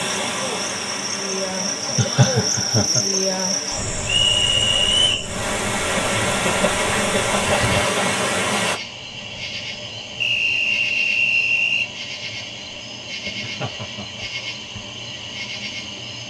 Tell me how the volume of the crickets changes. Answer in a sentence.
The volume of the crickets goes down.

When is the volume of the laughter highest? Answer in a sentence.
The volume of the laughter peaks at 2 seconds.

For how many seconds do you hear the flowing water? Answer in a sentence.
The flowing water can be heard for 9 seconds in total.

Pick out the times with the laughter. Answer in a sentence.
The laughter can be heard from 1.9 to 3.0 s, from 6.5 to 8.0 s and from 13.4 to 14.2 s.